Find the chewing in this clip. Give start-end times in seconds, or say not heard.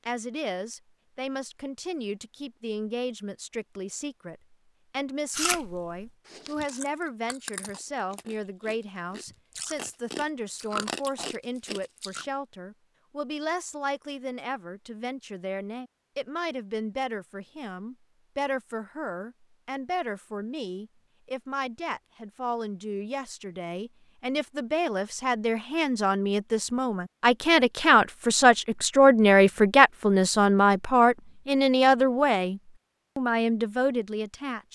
5.3-12.2.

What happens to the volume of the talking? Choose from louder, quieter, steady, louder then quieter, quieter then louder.
louder.